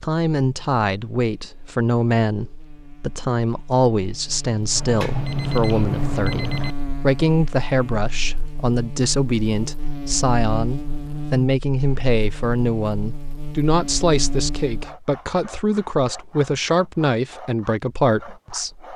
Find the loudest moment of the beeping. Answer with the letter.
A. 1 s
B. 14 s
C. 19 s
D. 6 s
D.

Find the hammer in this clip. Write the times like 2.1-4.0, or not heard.
not heard.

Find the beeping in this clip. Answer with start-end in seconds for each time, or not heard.
4.8-6.8.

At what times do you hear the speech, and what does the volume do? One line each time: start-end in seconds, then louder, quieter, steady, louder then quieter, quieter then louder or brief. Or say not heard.
0.0-18.9 steady.